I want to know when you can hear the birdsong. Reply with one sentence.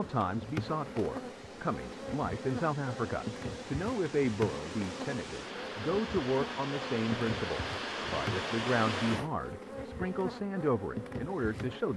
The birdsong can't be heard in this clip.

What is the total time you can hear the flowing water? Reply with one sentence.
You can hear the flowing water for 9 seconds altogether.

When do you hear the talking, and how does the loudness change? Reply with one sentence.
You can hear the talking from 0.0 to 11.9 s, at a steady volume.